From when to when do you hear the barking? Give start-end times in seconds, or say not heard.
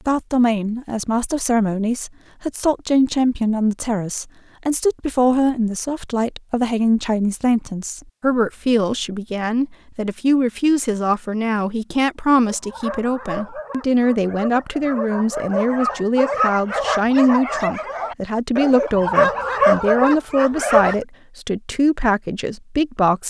12.4-20.9.